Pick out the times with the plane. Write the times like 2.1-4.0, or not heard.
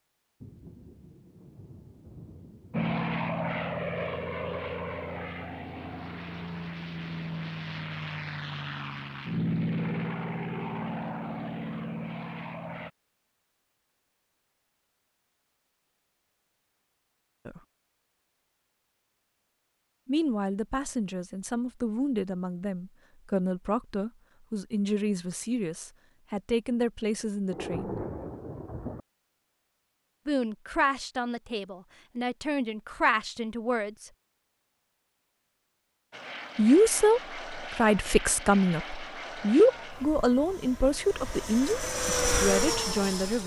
2.7-12.9, 36.1-43.4.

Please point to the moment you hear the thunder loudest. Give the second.
28 s.